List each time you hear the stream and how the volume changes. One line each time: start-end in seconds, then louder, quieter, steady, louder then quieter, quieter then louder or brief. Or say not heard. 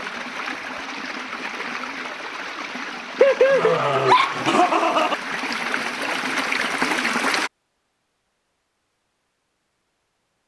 0.0-7.5 louder.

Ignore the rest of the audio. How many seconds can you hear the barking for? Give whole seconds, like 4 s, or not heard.
2 s.